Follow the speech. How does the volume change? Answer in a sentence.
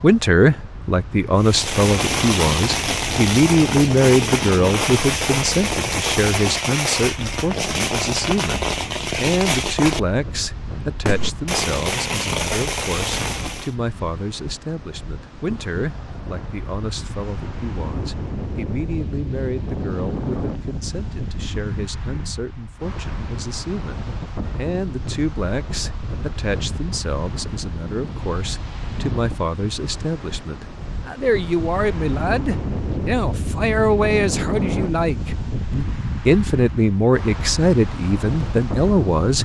The volume of the speech goes down, then up.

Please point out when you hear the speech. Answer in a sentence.
The speech can be heard from 0.0 to 39.3 s.